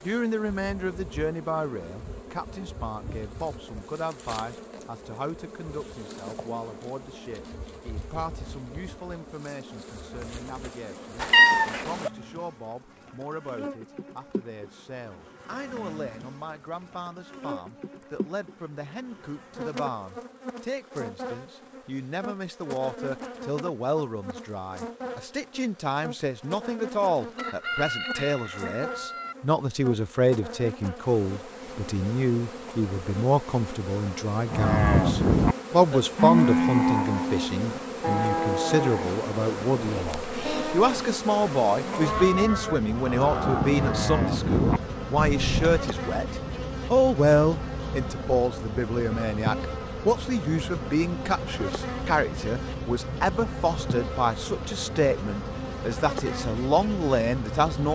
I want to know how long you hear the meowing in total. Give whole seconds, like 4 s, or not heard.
2 s.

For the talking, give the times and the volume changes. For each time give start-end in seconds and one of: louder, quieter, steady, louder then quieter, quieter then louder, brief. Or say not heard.
0.0-57.9 louder.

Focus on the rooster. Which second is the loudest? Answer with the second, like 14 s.
28 s.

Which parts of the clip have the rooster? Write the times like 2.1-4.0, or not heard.
27.4-29.4.